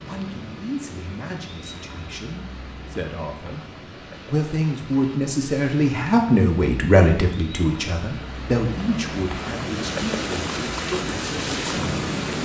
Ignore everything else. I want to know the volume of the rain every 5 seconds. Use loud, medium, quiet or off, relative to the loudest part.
quiet, medium, loud.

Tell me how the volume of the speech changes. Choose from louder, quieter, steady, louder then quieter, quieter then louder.
louder then quieter.